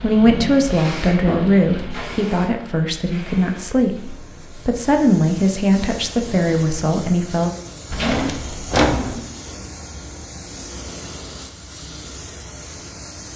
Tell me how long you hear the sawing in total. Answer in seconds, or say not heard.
not heard.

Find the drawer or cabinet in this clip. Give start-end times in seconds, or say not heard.
7.9-9.2.